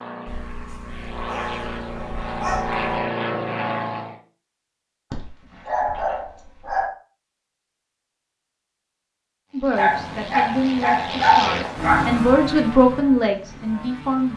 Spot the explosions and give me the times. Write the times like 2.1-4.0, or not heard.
not heard.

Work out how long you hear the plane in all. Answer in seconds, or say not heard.
9 s.